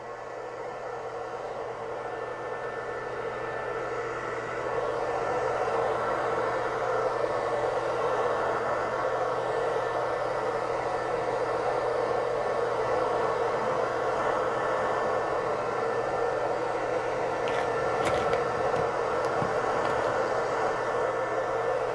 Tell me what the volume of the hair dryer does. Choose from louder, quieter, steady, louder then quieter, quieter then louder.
louder.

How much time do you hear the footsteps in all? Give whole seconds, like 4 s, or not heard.
3 s.